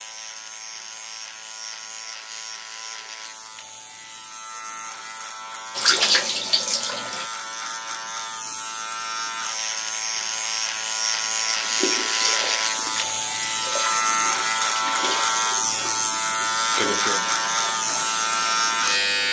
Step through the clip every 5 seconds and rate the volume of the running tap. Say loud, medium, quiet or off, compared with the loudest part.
off, loud, medium, medium.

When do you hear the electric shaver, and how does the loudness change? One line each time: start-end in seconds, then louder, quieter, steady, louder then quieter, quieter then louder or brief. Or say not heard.
0.0-19.2 louder.